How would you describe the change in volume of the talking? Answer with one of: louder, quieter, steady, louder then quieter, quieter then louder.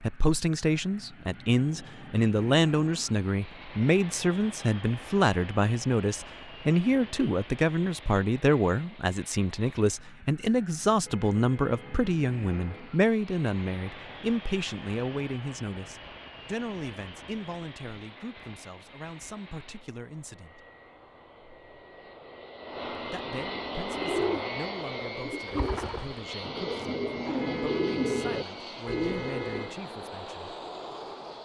quieter.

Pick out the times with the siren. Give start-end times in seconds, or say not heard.
not heard.